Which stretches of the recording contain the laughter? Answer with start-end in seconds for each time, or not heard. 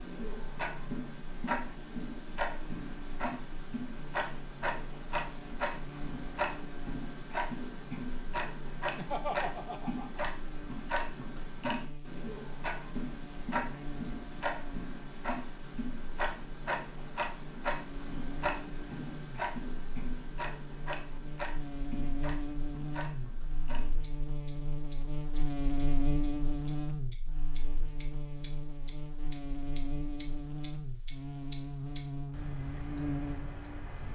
8.9-10.3.